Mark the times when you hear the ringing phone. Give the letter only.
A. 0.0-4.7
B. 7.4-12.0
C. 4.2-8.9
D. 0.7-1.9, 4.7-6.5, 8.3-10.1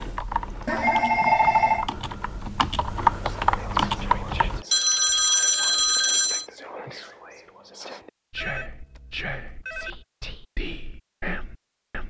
D.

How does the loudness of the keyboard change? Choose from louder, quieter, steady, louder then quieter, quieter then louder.
louder.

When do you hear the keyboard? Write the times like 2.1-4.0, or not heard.
0.0-4.7.